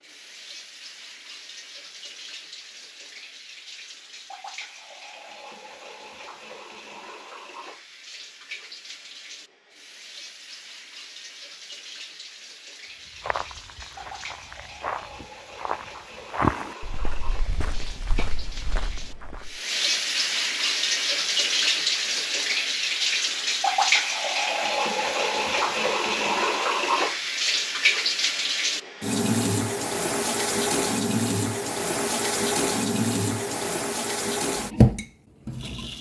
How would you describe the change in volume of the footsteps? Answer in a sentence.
The volume of the footsteps goes up, then down.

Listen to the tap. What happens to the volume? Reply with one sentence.
The volume of the tap goes up.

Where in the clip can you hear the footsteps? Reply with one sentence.
You can hear the footsteps from 13.1 to 19.6 s.